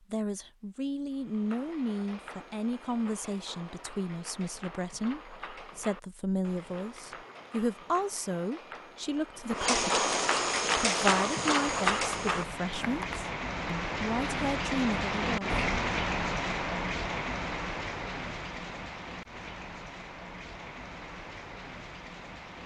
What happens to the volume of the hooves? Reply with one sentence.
The loudness of the hooves goes up.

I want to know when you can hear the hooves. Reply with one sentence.
You can hear the hooves from 1.1 to 13.2 s.